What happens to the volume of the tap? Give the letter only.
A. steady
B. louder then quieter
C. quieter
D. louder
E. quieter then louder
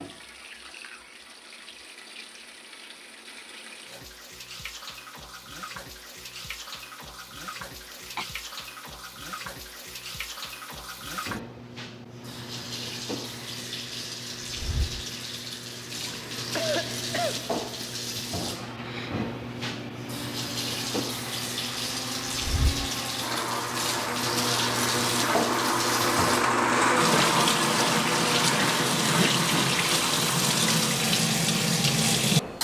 D.